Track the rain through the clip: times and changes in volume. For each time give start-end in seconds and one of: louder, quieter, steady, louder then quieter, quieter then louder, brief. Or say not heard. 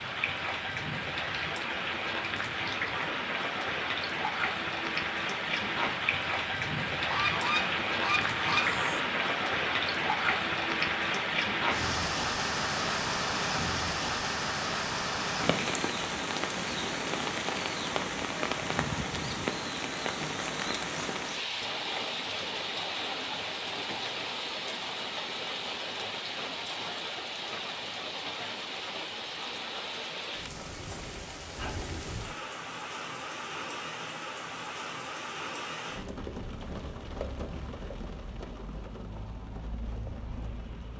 0.0-40.9 quieter.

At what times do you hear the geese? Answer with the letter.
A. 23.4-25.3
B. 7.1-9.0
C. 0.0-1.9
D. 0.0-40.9
B.